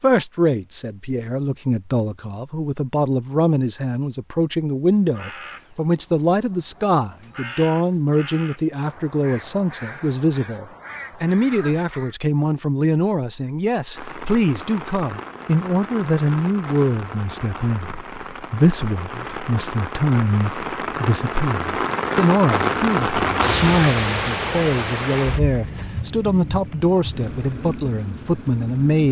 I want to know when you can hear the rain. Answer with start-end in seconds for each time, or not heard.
13.9-29.0.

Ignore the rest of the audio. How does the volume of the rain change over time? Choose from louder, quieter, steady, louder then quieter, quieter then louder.
louder then quieter.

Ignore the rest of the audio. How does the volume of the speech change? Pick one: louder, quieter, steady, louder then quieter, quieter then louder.
steady.